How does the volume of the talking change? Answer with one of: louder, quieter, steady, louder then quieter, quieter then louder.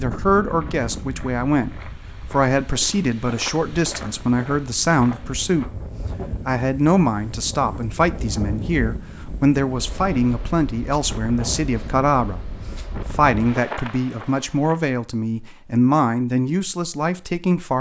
steady.